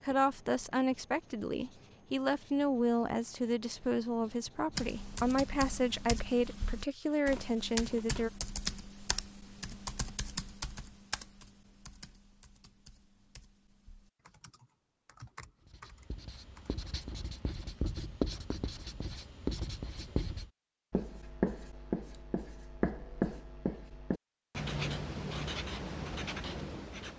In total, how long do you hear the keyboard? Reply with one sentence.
You can hear the keyboard for 12 seconds altogether.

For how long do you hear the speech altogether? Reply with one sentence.
You can hear the speech for 8 seconds altogether.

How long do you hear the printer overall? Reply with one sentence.
You can't hear the printer here.